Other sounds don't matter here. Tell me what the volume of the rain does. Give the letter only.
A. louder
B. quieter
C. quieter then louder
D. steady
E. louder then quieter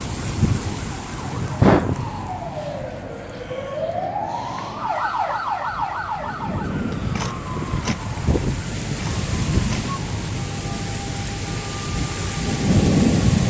C.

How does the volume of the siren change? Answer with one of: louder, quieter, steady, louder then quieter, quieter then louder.
louder then quieter.